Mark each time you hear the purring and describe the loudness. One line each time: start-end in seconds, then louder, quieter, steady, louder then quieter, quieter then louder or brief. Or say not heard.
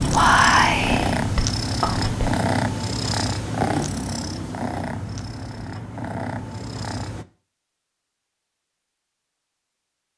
0.0-7.2 quieter.